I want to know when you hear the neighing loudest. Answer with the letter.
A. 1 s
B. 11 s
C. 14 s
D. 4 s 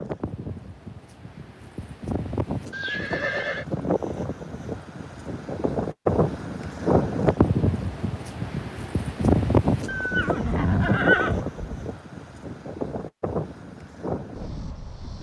B.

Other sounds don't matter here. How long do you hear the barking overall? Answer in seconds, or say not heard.
not heard.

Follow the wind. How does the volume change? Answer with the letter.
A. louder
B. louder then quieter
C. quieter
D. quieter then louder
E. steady
B.